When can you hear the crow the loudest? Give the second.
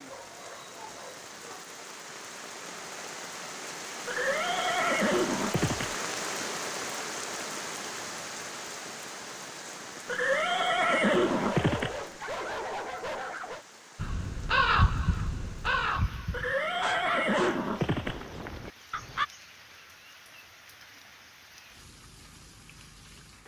15 s.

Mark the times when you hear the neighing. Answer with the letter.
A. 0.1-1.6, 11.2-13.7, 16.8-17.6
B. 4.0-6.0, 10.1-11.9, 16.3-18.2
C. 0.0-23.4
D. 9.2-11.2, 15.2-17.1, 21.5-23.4
B.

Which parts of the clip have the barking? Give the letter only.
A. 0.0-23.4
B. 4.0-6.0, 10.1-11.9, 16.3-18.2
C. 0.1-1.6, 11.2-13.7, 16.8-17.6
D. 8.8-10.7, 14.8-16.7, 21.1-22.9
C.